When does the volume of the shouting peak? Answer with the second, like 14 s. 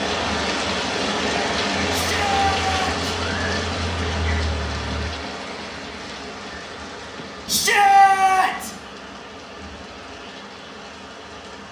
8 s.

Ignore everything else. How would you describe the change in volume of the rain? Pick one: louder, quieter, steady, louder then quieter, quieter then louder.
quieter.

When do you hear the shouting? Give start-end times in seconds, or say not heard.
1.9-2.9, 7.5-8.7.